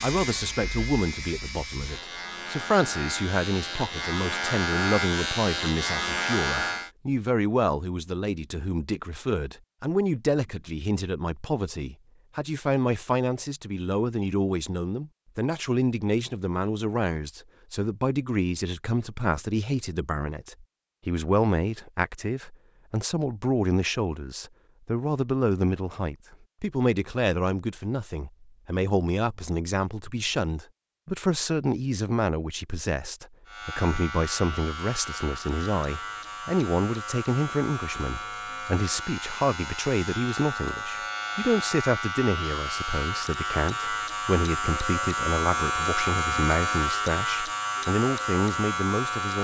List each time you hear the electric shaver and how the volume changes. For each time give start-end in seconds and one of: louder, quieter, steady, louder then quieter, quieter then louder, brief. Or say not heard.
0.0-6.9 louder
33.5-49.3 louder.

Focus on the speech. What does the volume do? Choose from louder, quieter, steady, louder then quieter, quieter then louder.
steady.